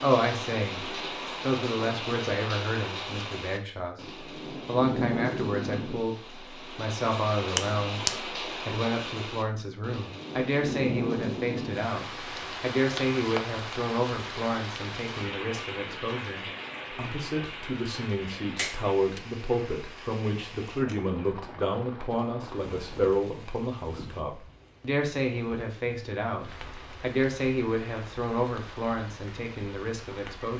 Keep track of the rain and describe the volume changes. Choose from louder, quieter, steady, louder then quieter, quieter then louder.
quieter.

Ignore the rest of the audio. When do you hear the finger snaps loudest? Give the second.
8 s.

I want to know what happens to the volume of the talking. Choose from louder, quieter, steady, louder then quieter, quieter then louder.
steady.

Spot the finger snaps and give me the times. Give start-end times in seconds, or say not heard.
7.5-8.2, 18.6-19.2.